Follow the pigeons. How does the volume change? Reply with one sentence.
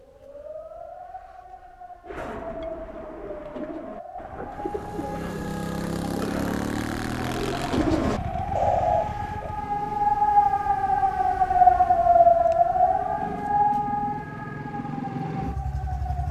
The loudness of the pigeons goes up.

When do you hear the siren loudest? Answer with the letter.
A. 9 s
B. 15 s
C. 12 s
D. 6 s
C.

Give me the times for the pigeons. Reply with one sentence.
You can hear the pigeons from 2.0 to 9.6 s.